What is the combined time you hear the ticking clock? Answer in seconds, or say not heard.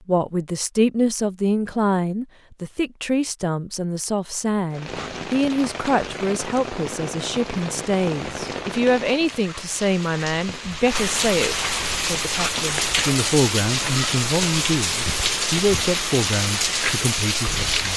not heard.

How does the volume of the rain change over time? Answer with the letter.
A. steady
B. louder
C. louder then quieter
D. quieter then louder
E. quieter
B.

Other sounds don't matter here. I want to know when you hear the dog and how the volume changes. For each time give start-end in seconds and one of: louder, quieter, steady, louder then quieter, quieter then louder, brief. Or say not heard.
not heard.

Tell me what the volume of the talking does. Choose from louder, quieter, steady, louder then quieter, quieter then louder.
steady.